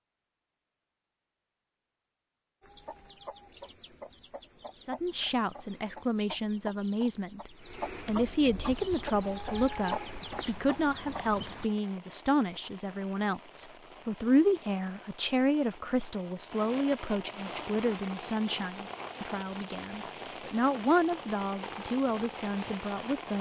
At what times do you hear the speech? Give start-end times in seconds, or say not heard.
4.8-23.3.